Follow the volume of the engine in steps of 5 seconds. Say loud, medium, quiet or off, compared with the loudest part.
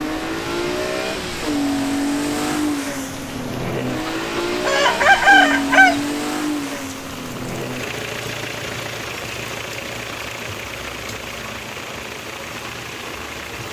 loud, loud, medium.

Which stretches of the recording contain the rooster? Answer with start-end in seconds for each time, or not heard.
4.0-6.0.